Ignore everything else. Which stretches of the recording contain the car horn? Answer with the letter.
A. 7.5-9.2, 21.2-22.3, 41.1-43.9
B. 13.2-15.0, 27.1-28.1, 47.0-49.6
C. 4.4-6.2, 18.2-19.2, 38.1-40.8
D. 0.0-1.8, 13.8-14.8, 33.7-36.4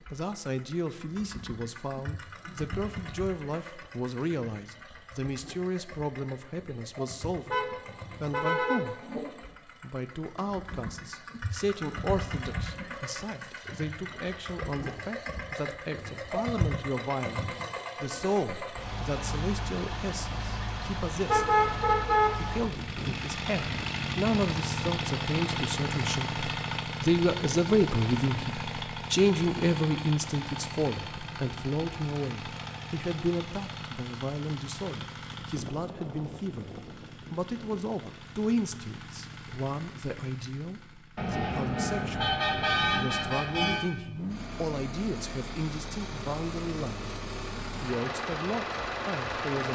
A.